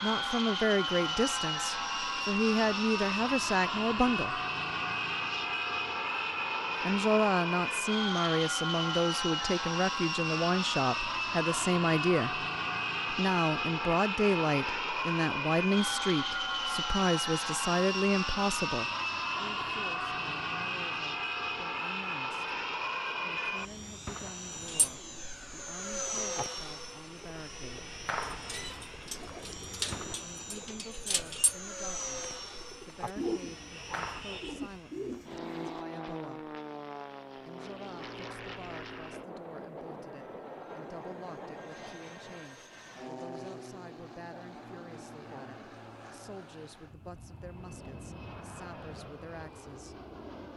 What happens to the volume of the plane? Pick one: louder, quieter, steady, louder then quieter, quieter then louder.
quieter.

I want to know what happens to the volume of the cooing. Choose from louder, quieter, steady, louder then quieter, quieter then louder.
louder.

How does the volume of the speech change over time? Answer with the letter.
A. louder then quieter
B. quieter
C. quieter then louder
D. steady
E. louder
B.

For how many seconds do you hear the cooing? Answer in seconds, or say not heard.
11 s.